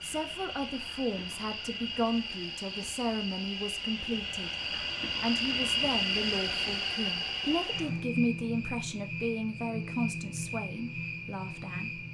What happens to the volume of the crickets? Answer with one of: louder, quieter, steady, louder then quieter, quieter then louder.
louder then quieter.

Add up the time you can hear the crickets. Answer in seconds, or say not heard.
12 s.